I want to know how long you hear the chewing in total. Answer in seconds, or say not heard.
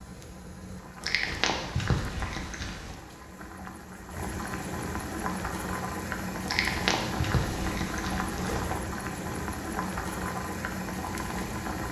4 s.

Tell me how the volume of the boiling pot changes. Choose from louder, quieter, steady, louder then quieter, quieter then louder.
louder.